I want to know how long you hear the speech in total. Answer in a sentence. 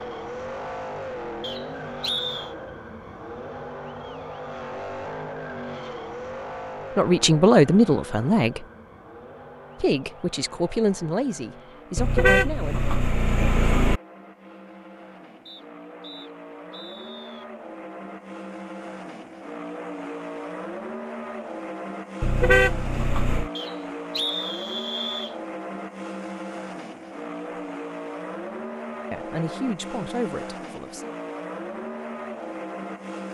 You can hear the speech for 7 seconds altogether.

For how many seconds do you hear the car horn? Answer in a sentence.
You can hear the car horn for 3 seconds altogether.